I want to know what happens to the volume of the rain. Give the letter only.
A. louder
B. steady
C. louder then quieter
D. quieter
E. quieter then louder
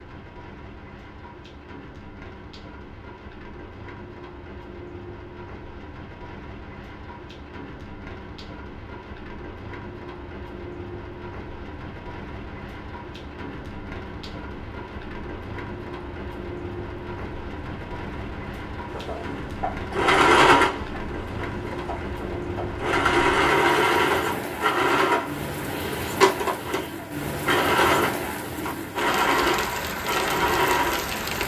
A.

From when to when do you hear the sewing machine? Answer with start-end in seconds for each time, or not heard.
18.9-31.4.